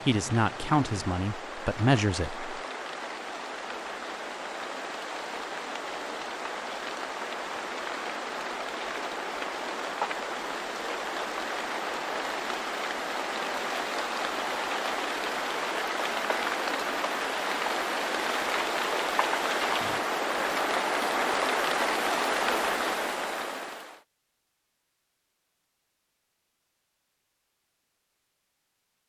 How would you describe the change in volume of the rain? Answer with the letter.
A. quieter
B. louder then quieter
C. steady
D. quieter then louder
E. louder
E.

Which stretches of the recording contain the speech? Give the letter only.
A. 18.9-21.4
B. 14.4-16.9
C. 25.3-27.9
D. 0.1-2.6
D.